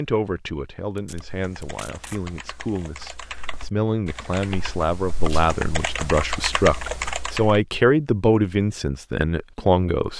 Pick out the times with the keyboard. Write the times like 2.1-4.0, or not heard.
1.1-7.7.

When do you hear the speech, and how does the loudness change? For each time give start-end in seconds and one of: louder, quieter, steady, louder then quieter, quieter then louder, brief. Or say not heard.
0.0-10.1 louder.